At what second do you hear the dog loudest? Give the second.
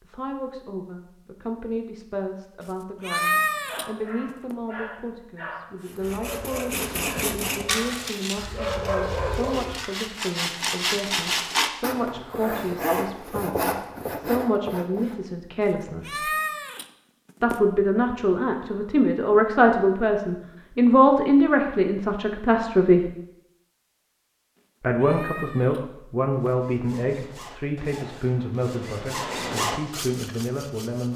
9 s.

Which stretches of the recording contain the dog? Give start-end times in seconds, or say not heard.
3.1-9.8.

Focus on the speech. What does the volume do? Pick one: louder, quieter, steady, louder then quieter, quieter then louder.
louder then quieter.